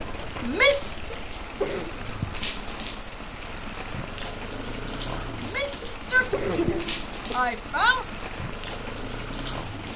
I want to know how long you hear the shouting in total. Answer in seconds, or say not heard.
3 s.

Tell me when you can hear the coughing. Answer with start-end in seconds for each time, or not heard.
1.1-1.9, 5.8-7.4.